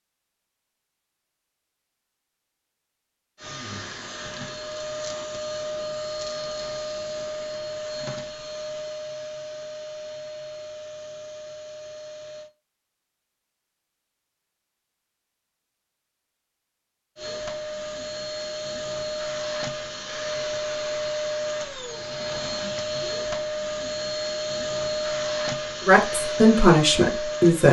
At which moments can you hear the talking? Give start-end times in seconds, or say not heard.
25.9-27.6.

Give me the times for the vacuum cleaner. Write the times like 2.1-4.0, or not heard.
3.4-12.5, 17.1-27.6.